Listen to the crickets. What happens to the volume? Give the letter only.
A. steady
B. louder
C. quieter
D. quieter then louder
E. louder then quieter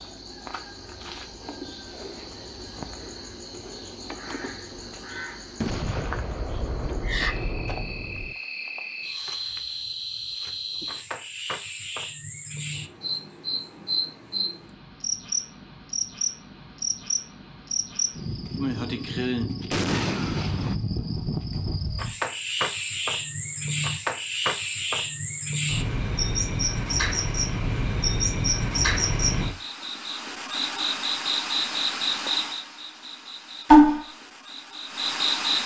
B.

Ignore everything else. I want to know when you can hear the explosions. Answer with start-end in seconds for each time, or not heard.
5.6-8.3, 19.7-20.8.